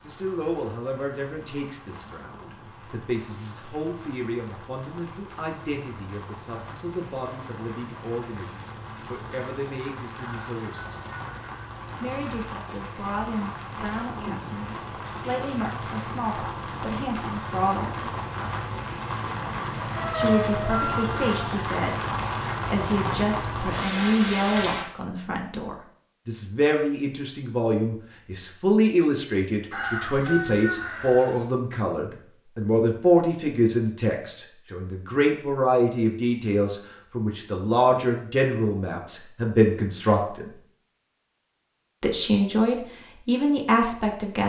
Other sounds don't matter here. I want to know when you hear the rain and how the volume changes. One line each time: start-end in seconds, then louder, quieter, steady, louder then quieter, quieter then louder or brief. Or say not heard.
0.0-24.9 louder.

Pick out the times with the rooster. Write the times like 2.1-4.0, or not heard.
10.2-11.9, 19.9-21.4, 29.7-31.4.